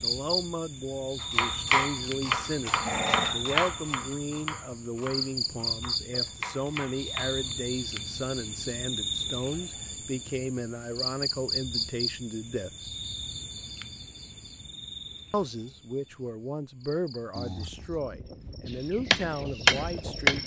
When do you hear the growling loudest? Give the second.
3 s.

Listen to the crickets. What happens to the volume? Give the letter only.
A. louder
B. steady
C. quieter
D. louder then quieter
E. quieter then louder
C.